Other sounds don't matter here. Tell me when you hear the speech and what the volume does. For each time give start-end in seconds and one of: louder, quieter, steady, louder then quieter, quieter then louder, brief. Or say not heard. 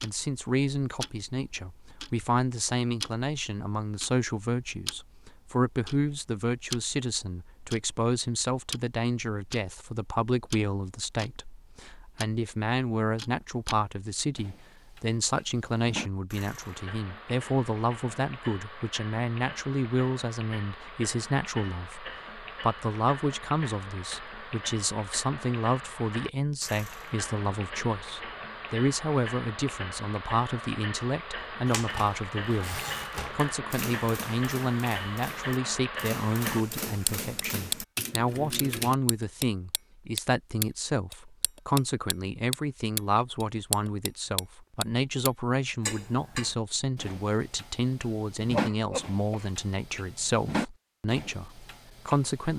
0.0-52.5 steady.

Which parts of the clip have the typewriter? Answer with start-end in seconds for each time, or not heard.
31.6-39.0.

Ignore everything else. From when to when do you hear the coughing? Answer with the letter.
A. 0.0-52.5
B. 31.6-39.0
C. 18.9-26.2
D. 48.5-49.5
D.